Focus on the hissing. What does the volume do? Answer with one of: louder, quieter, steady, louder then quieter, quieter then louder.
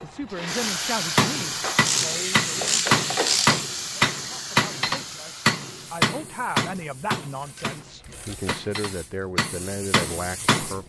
quieter then louder.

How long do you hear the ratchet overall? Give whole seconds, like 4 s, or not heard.
4 s.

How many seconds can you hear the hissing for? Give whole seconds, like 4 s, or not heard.
11 s.